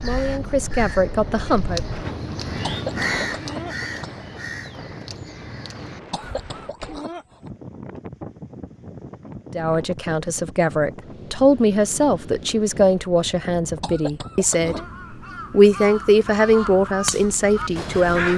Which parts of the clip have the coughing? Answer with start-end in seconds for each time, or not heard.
2.6-4.2, 6.1-7.5, 13.8-14.9.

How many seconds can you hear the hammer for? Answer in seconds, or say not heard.
not heard.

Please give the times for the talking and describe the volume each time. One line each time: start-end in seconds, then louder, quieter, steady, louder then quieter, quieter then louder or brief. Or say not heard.
0.0-1.8 brief
9.6-14.8 louder then quieter
15.5-18.3 brief.